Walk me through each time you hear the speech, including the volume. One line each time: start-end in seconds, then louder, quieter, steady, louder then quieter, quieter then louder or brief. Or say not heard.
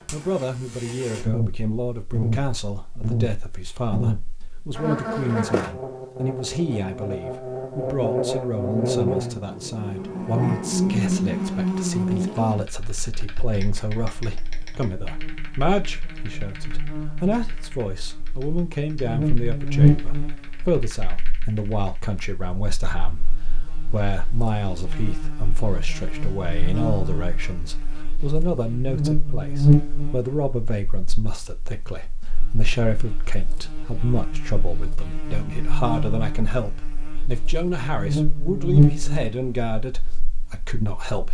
0.1-41.3 steady.